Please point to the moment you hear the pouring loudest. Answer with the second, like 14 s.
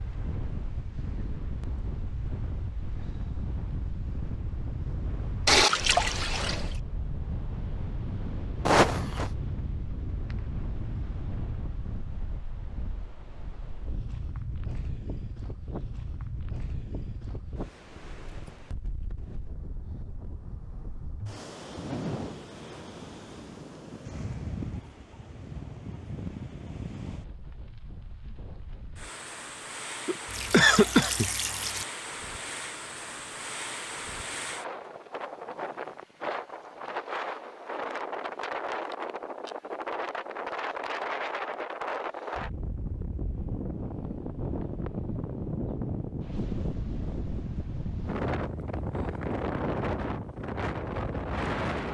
6 s.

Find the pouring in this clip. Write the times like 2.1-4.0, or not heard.
5.5-6.8, 30.2-31.9.